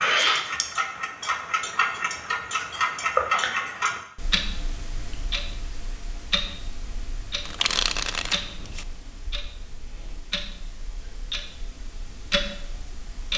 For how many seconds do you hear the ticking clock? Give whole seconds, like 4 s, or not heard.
13 s.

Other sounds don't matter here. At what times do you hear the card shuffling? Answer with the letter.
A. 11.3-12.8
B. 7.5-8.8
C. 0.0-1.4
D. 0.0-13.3
B.